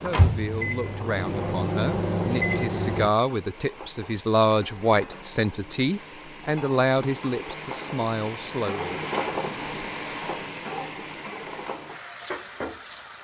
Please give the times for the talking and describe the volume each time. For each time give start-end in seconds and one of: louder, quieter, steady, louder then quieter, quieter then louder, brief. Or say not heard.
0.0-9.1 louder then quieter.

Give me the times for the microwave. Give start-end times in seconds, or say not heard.
0.0-3.1.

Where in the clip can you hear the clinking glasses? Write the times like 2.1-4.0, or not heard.
not heard.